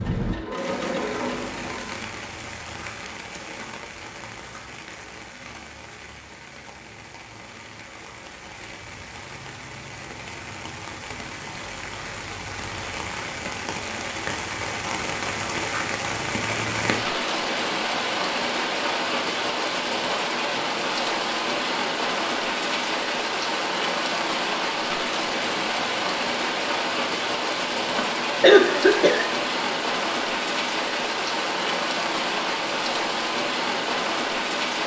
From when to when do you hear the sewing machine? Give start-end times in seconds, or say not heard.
0.0-2.0.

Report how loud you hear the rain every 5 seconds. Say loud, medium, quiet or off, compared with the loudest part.
medium, quiet, medium, loud, loud, loud, loud.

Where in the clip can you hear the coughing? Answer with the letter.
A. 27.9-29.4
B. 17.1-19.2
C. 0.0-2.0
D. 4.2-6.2
A.